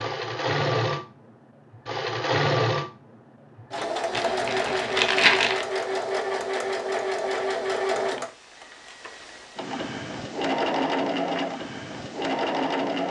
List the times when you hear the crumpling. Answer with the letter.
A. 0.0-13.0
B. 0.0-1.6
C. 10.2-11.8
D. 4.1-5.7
D.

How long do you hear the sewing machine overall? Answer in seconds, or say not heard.
13 s.